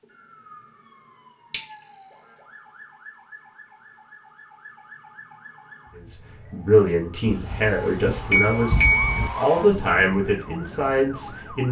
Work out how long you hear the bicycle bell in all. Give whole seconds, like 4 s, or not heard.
3 s.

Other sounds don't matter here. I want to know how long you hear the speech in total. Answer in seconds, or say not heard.
6 s.